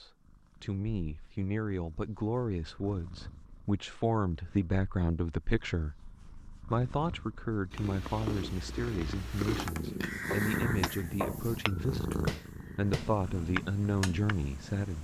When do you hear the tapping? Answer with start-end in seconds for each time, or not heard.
9.4-14.4.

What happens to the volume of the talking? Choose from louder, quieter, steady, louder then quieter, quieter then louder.
steady.